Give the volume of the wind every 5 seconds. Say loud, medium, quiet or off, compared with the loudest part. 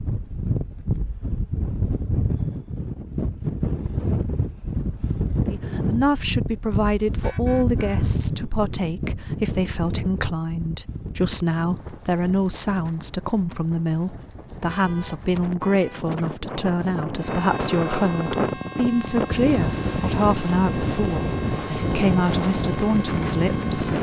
loud, loud, quiet, loud, loud.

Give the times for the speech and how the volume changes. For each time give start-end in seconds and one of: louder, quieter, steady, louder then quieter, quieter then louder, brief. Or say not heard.
5.5-23.9 steady.